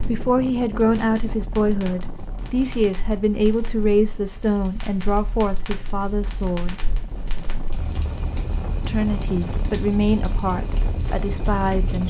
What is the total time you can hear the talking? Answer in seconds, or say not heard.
10 s.